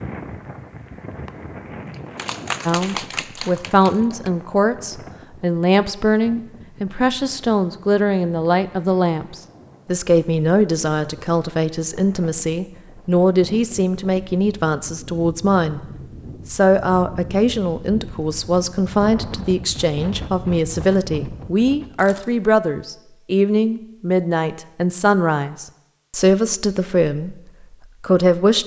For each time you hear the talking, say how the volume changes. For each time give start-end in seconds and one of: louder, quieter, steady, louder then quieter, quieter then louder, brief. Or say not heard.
2.6-15.8 steady
16.4-27.4 steady
28.0-28.6 brief.